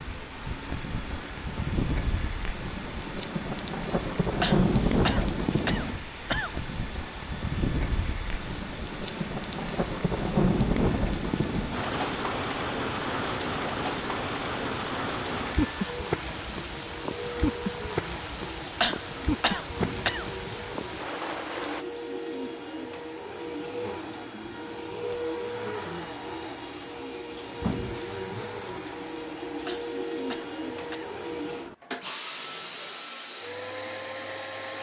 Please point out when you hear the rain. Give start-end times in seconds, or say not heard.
0.0-21.9.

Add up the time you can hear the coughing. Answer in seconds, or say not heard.
5 s.